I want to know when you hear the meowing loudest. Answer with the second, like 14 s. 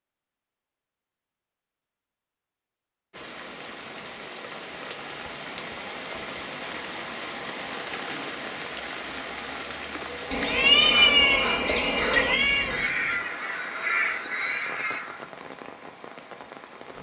11 s.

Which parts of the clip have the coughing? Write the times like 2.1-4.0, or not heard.
not heard.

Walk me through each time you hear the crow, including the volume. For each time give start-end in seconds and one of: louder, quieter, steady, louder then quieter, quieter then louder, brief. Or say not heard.
10.1-15.2 steady.